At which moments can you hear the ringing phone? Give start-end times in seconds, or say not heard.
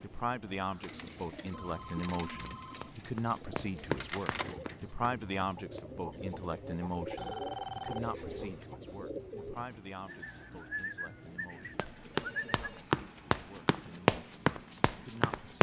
0.7-3.0, 7.2-8.7, 12.1-12.9.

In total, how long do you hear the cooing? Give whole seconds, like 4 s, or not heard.
12 s.